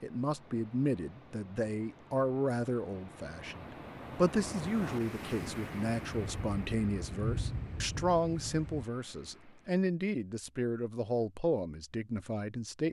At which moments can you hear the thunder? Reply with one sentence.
You can hear the thunder from 5.4 to 8.8 s.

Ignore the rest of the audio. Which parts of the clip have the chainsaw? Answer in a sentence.
The chainsaw can't be heard in this clip.